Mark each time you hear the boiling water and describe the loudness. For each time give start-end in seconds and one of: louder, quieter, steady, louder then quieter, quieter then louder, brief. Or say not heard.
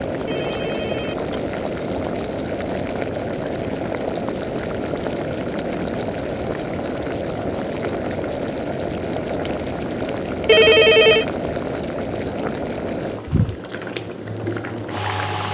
0.0-15.4 steady.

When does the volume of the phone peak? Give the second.
11 s.